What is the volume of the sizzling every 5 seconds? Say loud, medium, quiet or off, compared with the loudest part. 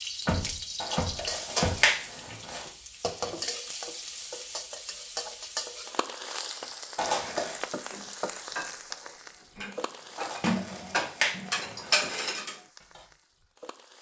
loud, loud, quiet.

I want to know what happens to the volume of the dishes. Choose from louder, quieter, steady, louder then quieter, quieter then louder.
louder.